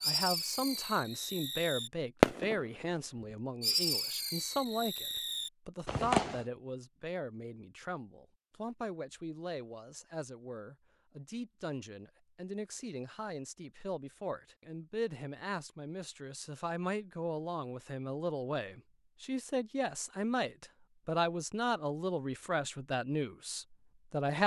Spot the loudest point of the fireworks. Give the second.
2 s.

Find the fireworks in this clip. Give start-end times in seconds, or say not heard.
0.0-2.9, 3.6-6.5.